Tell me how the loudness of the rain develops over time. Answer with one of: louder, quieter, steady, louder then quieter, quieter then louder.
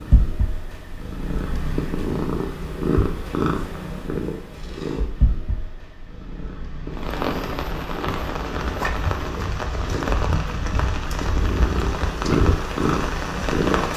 steady.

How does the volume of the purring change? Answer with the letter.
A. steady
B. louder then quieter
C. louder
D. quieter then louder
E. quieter
D.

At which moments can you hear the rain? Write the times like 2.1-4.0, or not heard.
6.8-13.9.